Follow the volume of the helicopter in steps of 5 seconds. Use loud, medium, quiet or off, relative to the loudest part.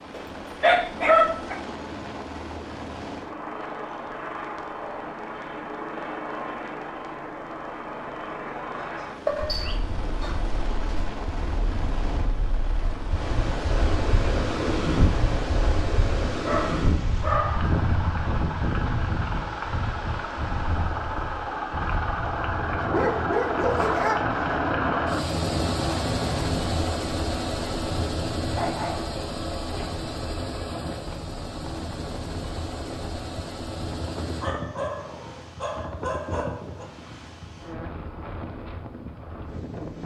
medium, medium, medium, medium, loud, loud, medium, off.